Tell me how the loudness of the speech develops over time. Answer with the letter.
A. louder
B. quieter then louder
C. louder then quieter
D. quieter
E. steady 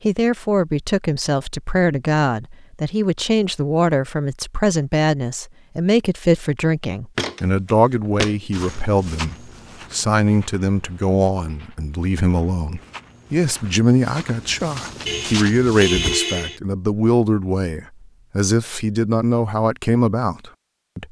E.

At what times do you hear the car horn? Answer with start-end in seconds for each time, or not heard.
15.1-16.6.